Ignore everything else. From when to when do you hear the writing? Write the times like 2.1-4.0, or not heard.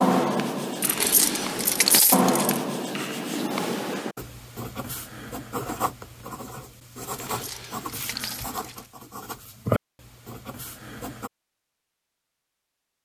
0.0-11.3.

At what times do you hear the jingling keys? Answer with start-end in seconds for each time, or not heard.
0.8-2.6, 7.1-8.9.